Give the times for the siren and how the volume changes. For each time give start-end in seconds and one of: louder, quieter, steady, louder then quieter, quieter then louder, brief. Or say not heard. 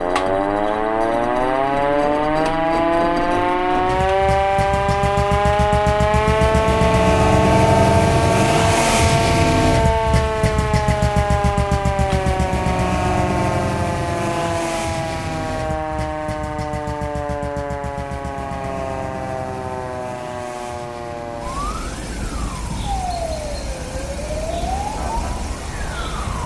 0.0-26.4 quieter.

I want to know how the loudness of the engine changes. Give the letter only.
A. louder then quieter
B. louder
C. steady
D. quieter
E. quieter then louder
A.